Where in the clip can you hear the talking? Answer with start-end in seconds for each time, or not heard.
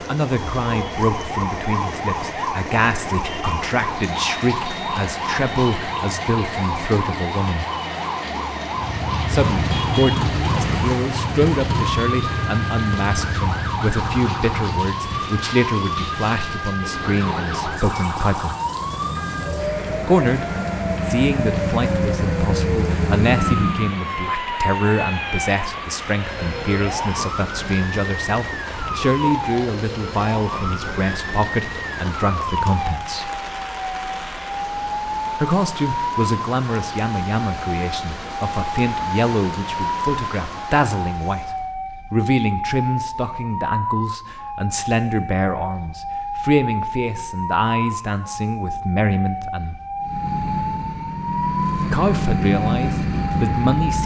0.0-7.7, 9.3-18.6, 20.1-33.3, 35.3-49.8, 51.9-54.0.